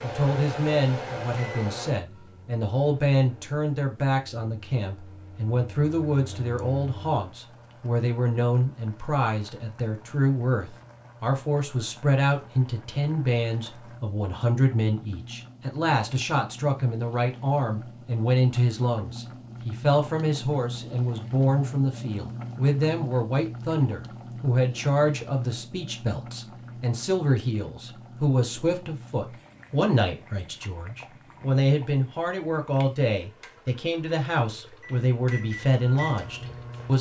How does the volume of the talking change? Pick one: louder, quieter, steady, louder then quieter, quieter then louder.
steady.